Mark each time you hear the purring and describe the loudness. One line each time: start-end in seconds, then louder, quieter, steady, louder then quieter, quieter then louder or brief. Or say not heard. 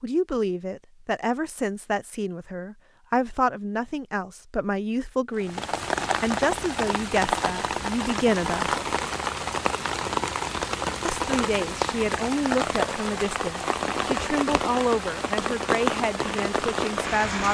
not heard.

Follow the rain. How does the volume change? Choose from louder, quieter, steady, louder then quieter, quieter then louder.
steady.